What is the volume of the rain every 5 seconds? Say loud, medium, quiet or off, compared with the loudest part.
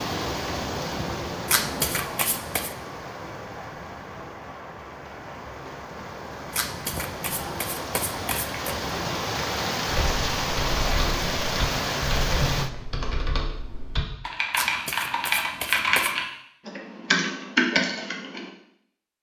medium, medium, loud, off.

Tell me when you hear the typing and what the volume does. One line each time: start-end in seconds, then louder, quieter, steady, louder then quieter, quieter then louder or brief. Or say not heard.
9.8-18.5 louder.